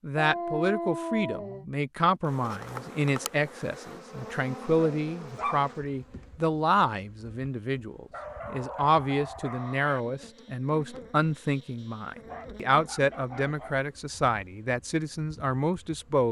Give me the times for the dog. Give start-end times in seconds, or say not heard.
0.1-1.6, 4.8-6.2, 8.1-10.1, 12.2-13.8.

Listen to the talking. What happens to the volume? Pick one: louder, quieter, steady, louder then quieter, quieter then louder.
steady.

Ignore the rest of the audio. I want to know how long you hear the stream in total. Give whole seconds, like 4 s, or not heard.
not heard.